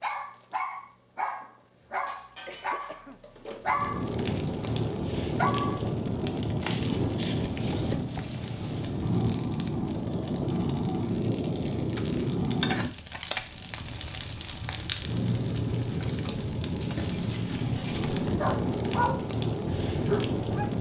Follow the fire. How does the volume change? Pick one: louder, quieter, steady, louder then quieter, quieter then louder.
steady.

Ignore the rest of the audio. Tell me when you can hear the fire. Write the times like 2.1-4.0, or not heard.
3.6-20.7.